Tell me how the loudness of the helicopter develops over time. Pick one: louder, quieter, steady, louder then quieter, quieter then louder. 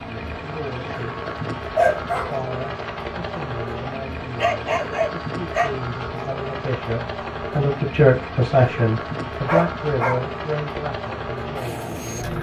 steady.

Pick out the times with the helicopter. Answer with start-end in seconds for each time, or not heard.
0.0-12.3.